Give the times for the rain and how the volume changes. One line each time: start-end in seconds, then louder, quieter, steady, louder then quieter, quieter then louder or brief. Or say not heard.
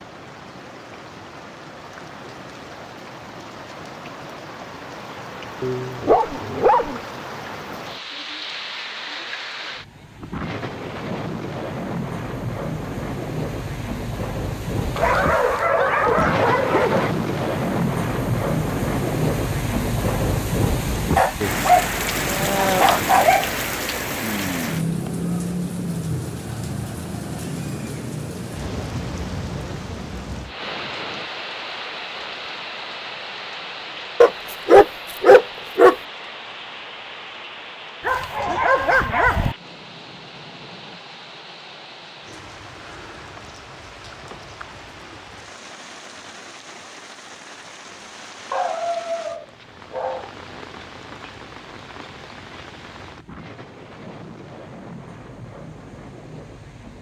0.0-56.9 louder then quieter.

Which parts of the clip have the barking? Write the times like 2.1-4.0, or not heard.
5.6-7.0, 14.9-17.1, 21.1-23.5, 34.2-36.0, 38.0-39.5, 48.5-50.4.